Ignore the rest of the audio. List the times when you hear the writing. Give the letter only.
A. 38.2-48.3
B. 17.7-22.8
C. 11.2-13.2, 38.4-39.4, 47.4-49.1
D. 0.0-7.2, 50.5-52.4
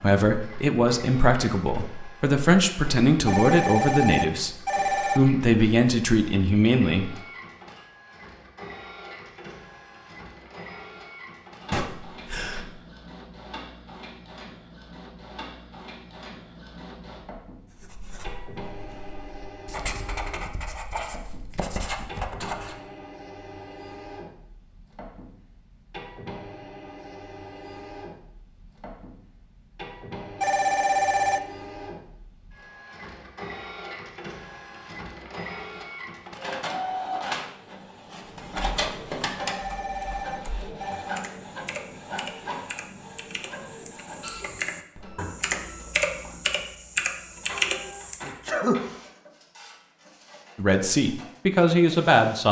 B.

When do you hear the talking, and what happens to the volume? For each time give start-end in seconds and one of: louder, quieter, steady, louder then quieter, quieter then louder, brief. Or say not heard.
0.0-7.2 steady
50.5-52.4 brief.